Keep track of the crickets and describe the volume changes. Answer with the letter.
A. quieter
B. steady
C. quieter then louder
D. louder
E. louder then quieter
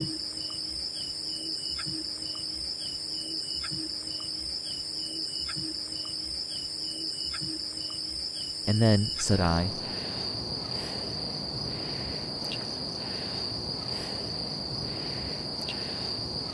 B.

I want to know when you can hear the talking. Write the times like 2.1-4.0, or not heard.
8.7-9.8.